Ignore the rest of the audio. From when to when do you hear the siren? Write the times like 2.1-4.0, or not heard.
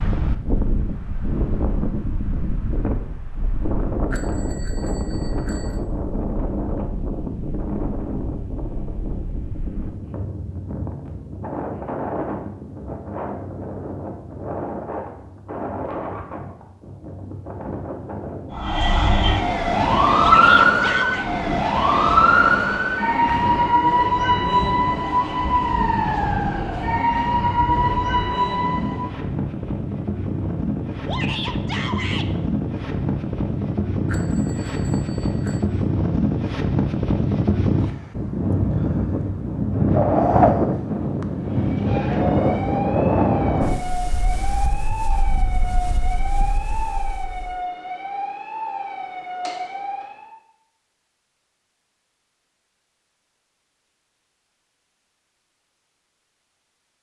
18.5-29.1, 41.5-50.4.